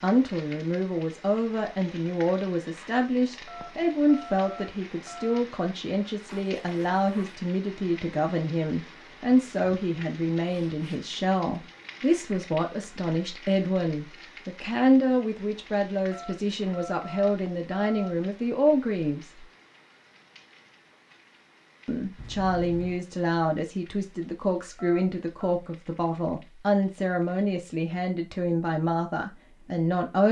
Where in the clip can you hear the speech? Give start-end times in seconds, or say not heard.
0.0-19.4, 21.9-30.2.